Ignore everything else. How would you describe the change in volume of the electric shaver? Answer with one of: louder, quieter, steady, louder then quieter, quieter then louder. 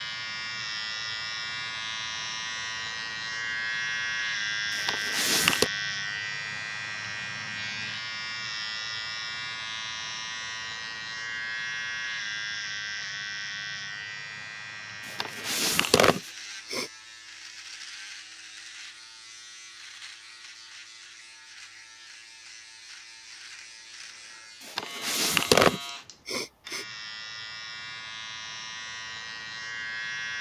quieter then louder.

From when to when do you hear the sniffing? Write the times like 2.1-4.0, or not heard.
4.8-5.7, 15.1-16.9, 24.6-26.9.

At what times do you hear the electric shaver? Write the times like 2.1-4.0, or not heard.
0.0-30.3.